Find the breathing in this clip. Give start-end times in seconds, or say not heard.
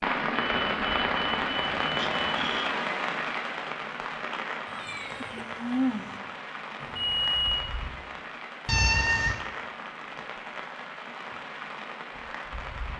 not heard.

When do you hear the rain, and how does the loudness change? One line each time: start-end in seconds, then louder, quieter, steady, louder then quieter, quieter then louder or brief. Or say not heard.
0.0-12.9 quieter.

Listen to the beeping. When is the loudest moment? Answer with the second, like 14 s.
7 s.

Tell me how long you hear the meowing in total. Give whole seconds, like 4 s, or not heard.
3 s.